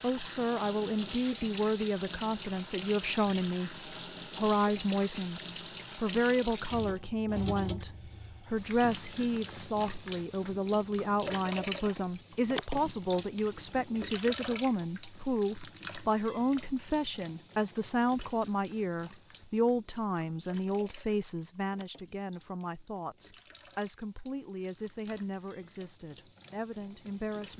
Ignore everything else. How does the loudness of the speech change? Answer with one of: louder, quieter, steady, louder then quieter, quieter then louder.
quieter.